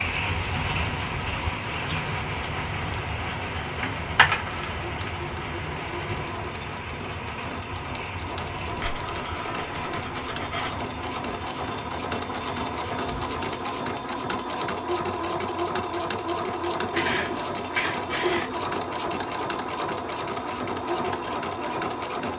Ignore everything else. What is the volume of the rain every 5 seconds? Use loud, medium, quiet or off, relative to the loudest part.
loud, medium, medium, off, off.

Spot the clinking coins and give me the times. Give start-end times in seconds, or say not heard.
3.8-4.4, 8.7-10.7, 16.9-18.5.